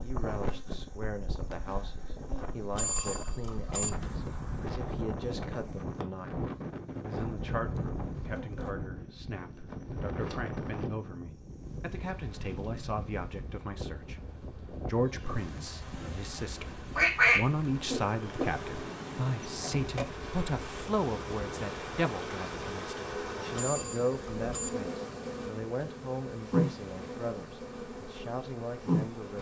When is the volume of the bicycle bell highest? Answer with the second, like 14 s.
3 s.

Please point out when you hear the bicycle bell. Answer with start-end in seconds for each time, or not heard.
2.8-3.9, 23.5-24.7.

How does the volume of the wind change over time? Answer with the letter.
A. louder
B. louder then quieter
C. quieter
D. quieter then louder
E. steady
C.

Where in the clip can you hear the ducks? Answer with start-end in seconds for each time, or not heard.
16.9-18.4.